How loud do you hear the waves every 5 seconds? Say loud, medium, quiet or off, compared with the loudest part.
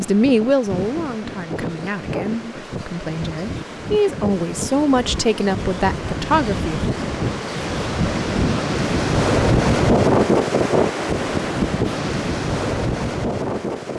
medium, loud, loud.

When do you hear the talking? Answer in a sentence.
You can hear the talking from 0.0 to 6.8 s.